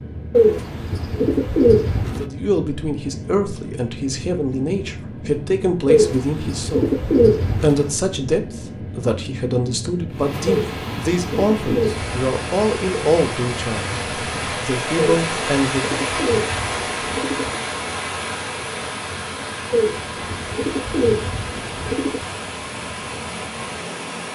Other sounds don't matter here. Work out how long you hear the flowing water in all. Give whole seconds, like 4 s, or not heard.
14 s.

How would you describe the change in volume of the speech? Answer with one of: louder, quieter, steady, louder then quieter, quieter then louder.
steady.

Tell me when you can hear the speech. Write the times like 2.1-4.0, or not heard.
2.1-16.0.